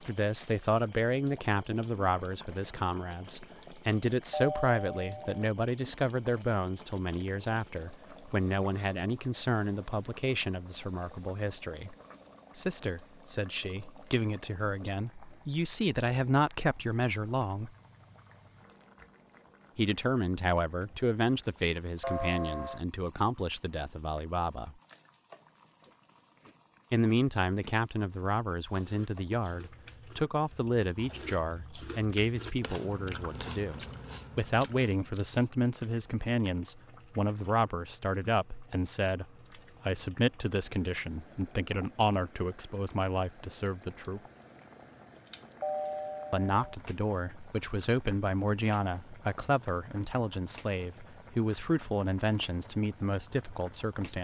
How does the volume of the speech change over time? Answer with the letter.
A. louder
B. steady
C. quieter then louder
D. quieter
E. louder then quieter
B.